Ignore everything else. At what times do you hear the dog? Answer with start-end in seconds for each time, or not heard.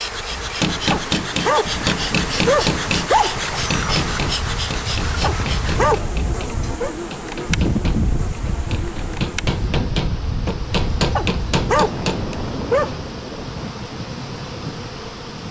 0.9-3.4, 5.2-6.9, 11.2-12.9.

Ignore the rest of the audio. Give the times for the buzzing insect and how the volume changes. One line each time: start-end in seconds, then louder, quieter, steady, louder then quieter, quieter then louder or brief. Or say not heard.
0.0-15.4 quieter.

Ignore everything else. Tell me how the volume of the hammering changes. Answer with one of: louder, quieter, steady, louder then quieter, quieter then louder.
quieter then louder.